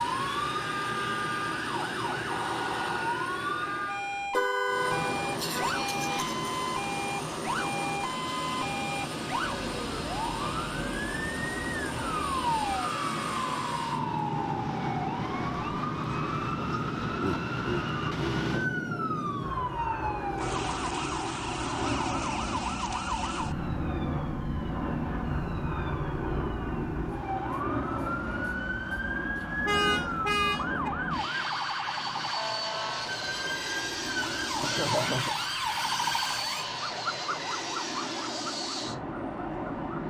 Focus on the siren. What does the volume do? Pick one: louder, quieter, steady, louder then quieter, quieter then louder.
steady.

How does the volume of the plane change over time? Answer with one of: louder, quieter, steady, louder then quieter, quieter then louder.
steady.